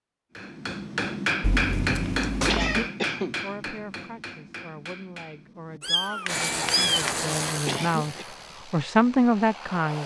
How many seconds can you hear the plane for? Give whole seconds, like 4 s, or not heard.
4 s.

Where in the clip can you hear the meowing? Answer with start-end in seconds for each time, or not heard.
1.4-2.9, 5.8-7.0.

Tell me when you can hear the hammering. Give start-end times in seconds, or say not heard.
0.3-7.2.